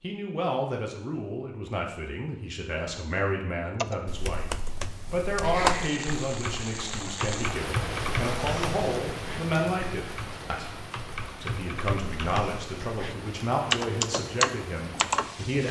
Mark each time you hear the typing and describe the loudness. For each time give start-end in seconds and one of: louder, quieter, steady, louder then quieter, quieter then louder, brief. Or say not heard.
3.8-15.3 quieter then louder.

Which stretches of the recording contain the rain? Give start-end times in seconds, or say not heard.
5.0-15.6.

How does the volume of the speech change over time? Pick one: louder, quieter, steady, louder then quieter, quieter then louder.
steady.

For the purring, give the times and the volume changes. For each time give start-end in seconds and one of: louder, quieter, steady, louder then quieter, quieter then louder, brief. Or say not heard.
not heard.